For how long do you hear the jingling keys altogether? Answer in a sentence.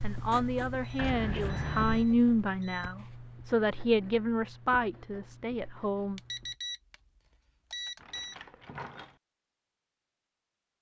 You can hear the jingling keys for 2 seconds altogether.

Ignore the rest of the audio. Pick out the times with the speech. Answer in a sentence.
You can hear the speech from 0.0 to 6.2 s.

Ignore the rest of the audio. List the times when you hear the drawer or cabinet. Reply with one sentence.
The drawer or cabinet can't be heard in this clip.